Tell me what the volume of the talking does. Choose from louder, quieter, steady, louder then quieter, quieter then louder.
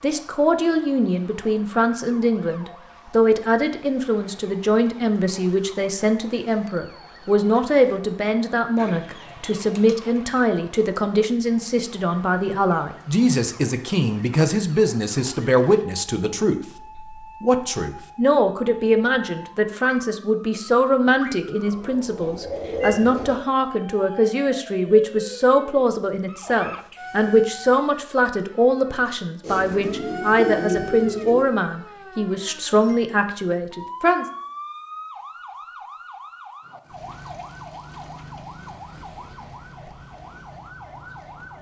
steady.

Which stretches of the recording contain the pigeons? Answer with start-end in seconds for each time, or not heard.
8.8-10.3, 21.4-23.4, 29.4-31.4.